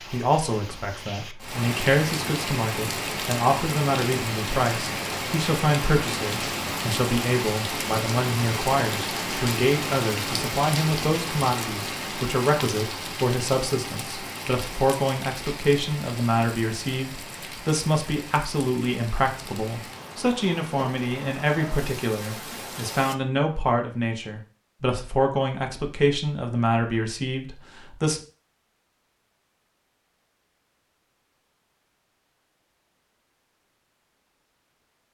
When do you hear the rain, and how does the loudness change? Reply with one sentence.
You can hear the rain from 0.0 to 23.1 s, getting quieter.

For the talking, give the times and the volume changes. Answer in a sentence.
The talking can be heard from 0.1 to 28.2 s, at a steady volume.